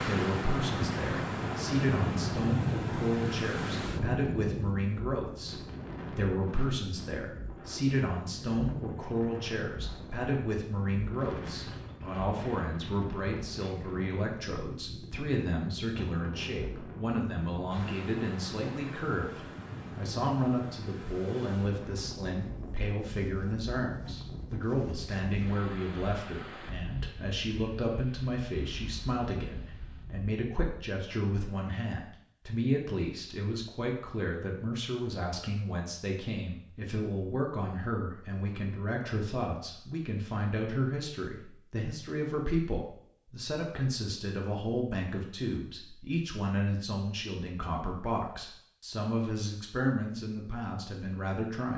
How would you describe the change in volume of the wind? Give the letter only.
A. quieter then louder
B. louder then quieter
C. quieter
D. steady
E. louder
C.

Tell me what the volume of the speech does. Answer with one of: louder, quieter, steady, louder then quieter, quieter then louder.
steady.